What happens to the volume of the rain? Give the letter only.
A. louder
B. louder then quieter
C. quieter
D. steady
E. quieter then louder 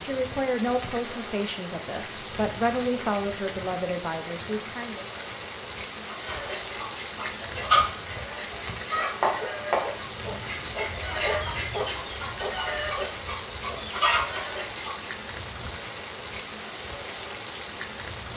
D.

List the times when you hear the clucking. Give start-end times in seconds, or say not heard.
6.0-15.2.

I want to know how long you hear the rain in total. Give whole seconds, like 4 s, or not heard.
18 s.